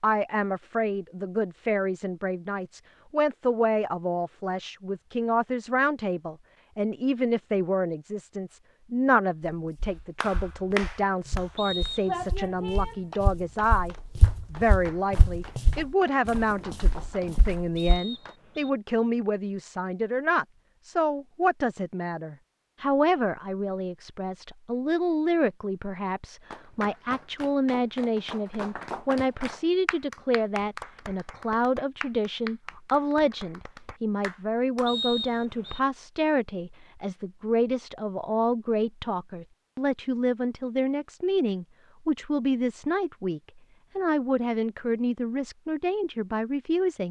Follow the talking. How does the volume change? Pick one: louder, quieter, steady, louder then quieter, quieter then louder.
steady.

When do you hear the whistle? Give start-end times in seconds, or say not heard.
11.6-12.2, 17.8-18.7, 34.9-35.8.